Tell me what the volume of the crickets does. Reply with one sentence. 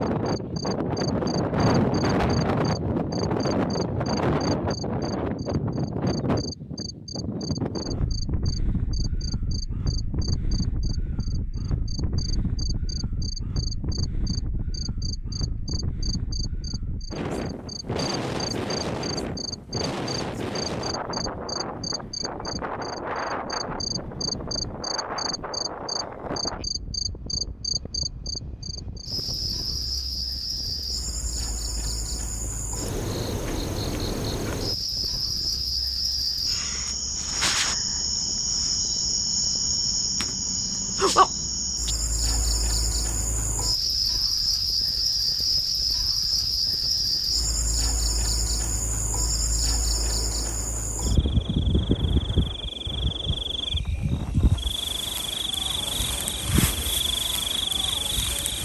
The volume of the crickets goes up.